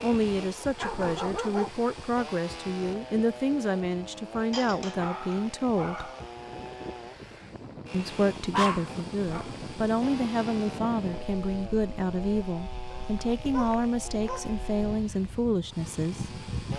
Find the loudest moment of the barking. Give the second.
9 s.